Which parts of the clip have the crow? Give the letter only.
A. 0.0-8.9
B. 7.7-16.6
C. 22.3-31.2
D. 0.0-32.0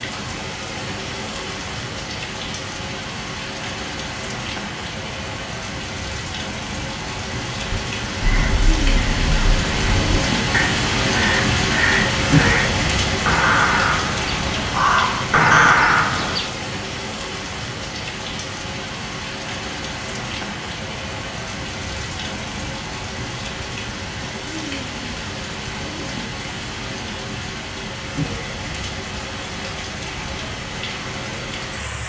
B.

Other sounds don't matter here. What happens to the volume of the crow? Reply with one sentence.
The volume of the crow goes up.